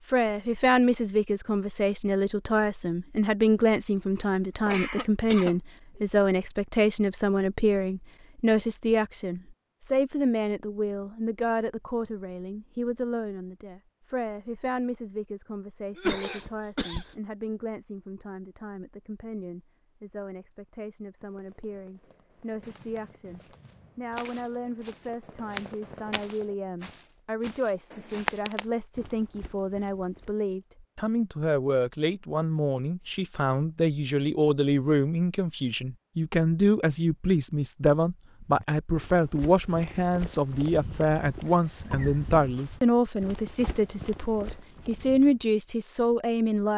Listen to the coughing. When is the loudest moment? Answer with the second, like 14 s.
16 s.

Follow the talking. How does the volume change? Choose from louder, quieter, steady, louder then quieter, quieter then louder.
quieter then louder.